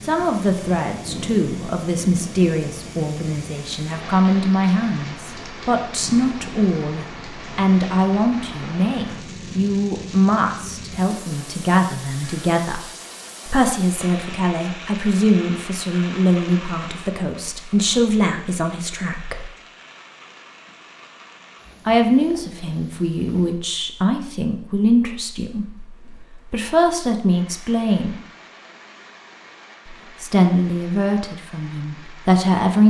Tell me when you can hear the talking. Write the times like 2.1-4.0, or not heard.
0.0-12.8, 13.4-19.4, 21.9-28.2, 29.9-32.8.